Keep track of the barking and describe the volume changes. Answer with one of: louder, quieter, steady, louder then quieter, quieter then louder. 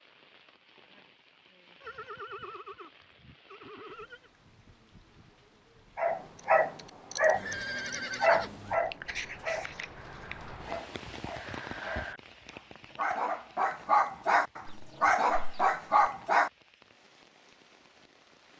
quieter then louder.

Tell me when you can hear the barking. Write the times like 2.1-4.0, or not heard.
6.0-16.5.